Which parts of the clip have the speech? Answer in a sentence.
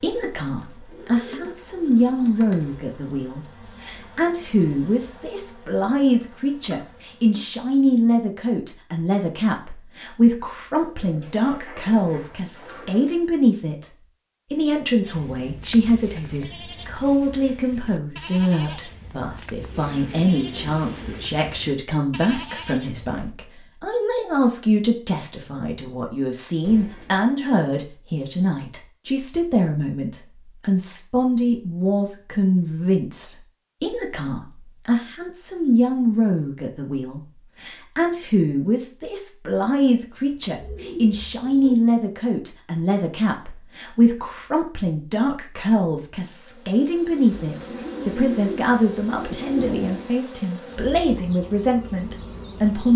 You can hear the speech from 0.0 to 13.9 s and from 14.5 to 52.9 s.